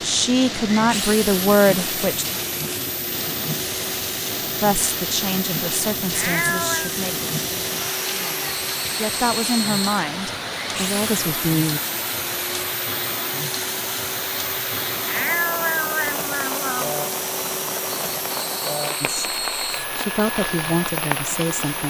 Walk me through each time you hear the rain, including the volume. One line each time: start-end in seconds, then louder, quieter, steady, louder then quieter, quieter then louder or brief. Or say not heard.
0.0-21.8 steady.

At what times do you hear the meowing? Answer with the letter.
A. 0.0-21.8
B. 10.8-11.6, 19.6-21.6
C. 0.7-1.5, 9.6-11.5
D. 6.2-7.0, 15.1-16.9
D.